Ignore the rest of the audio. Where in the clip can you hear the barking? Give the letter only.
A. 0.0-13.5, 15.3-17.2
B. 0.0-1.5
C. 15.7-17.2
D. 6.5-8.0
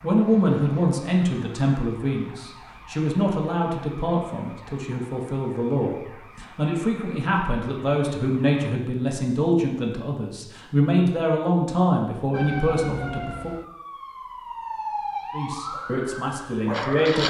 C.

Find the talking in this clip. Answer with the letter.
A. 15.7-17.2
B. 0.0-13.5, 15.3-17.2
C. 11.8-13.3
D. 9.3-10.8
B.